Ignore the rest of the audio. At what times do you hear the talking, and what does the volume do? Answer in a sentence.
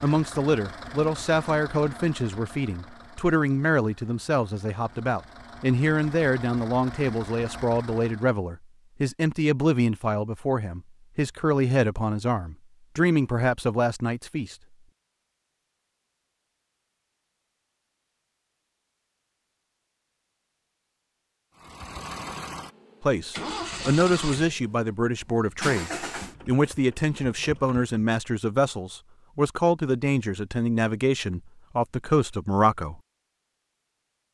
The talking can be heard from 0.0 to 14.6 s, at a steady volume; and from 23.0 to 33.0 s, at a steady volume.